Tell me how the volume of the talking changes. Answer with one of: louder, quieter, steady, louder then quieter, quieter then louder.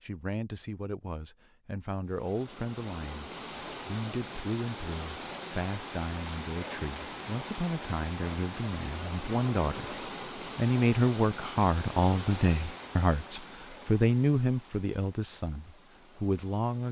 louder.